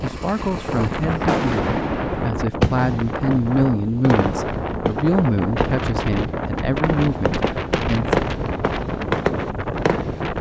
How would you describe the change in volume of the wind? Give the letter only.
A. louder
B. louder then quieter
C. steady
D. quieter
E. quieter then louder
C.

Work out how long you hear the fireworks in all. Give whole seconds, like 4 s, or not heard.
10 s.